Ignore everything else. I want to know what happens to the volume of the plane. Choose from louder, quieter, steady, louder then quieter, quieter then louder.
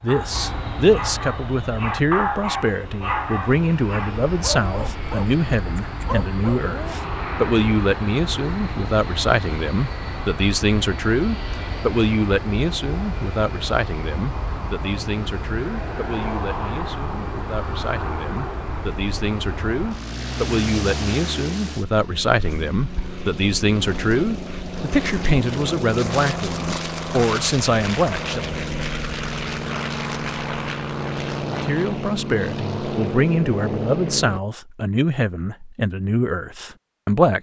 louder.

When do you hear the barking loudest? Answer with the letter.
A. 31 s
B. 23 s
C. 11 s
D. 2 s
D.